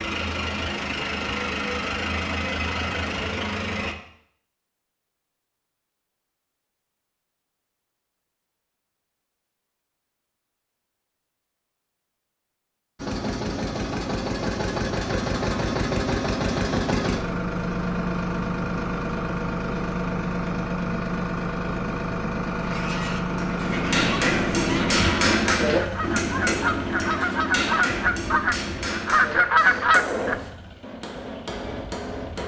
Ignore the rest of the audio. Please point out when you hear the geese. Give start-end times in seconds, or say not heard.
22.6-30.4.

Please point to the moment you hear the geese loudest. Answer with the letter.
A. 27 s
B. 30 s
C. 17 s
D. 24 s
B.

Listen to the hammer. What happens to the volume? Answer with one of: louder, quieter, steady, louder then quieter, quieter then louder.
quieter.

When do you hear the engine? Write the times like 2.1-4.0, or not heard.
0.0-4.0, 13.0-32.4.